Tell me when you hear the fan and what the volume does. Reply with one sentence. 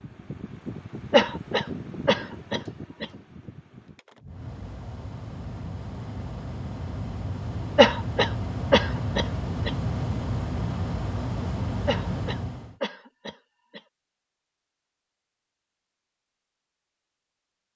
You can hear the fan from 0.0 to 12.8 s, getting quieter then louder.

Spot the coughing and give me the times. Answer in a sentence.
You can hear the coughing from 1.1 to 3.0 s, from 7.8 to 9.7 s and from 11.8 to 13.8 s.